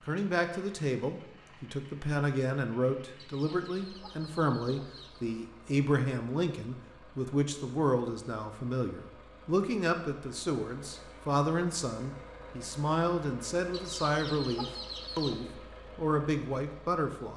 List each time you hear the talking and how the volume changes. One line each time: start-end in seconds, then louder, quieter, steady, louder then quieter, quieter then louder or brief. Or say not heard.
0.1-17.3 steady.